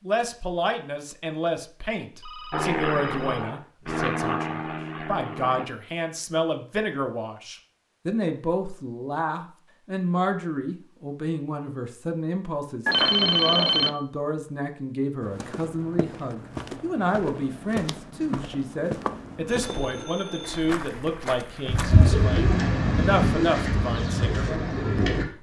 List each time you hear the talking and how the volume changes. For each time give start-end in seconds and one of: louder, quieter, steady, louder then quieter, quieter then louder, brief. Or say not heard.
0.0-25.3 steady.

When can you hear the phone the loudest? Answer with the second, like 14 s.
13 s.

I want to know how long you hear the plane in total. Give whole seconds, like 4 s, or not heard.
3 s.